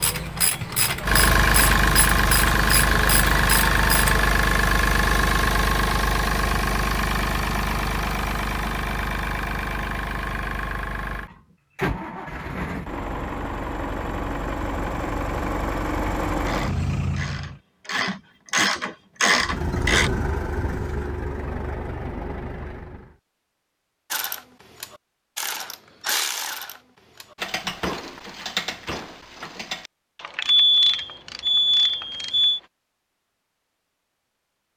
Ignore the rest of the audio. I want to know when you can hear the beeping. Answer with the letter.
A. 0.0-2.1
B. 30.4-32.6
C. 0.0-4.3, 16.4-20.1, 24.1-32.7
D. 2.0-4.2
B.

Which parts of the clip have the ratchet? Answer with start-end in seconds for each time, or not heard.
0.0-4.3, 16.4-20.1, 24.1-32.7.